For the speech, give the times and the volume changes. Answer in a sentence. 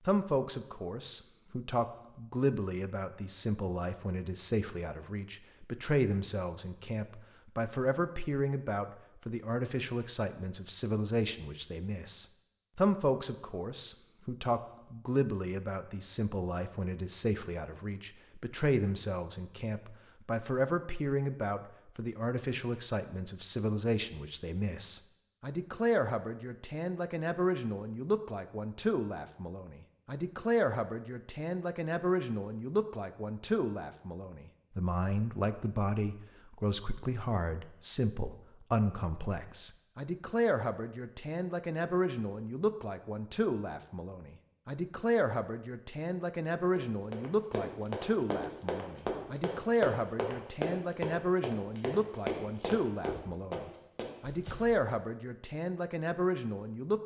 You can hear the speech from 0.1 to 57.0 s, at a steady volume.